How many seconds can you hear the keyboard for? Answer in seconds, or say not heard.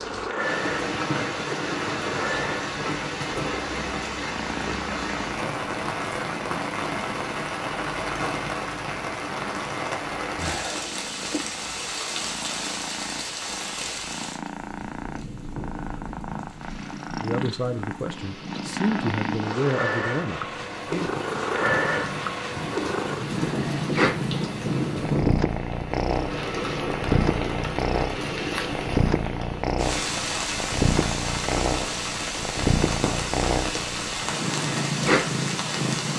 not heard.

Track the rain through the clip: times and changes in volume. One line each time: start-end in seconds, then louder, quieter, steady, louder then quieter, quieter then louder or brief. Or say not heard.
0.0-36.1 quieter then louder.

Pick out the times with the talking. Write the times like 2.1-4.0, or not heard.
17.2-21.1.